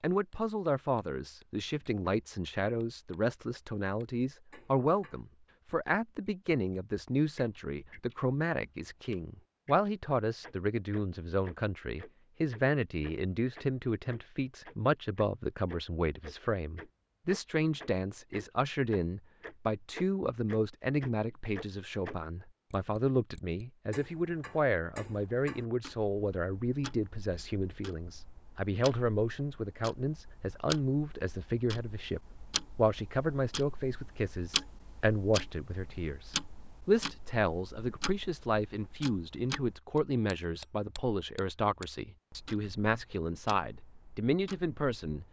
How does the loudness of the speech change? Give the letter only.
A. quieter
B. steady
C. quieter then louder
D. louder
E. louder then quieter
B.